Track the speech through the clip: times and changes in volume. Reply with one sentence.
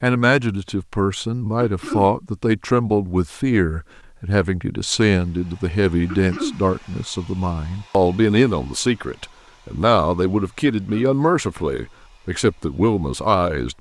You can hear the speech from 0.0 to 13.7 s, at a steady volume.